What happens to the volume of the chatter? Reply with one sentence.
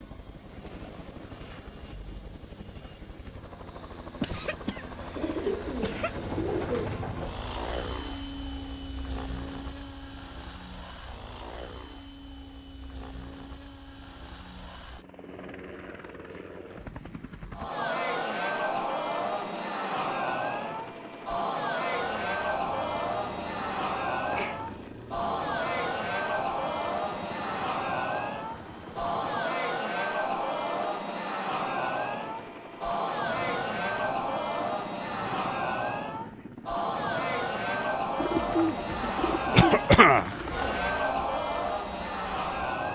The volume of the chatter stays about the same.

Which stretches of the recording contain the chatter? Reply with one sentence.
You can hear the chatter from 17.5 to 42.9 s.